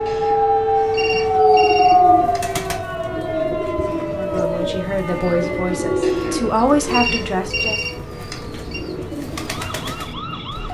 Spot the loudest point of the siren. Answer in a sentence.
The loudest moment of the siren is at 2 seconds.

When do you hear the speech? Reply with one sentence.
You can hear the speech from 4.0 to 7.8 s.